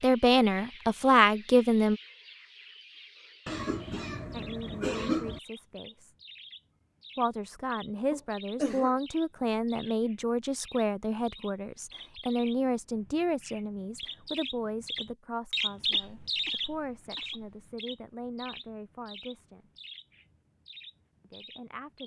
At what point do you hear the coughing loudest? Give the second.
5 s.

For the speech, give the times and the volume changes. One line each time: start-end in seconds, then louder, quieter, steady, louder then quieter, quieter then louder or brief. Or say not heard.
0.0-2.0 brief
4.3-6.2 brief
7.2-19.6 quieter
21.2-22.0 brief.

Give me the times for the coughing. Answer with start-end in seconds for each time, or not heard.
3.5-5.4, 8.1-8.9, 15.8-17.6.